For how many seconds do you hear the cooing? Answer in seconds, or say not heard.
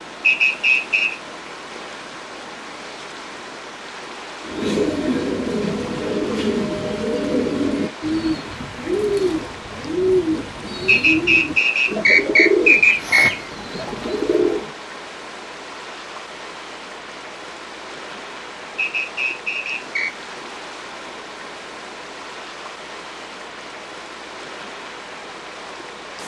10 s.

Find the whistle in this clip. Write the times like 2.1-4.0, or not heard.
0.2-1.1, 10.8-13.3, 18.8-20.1.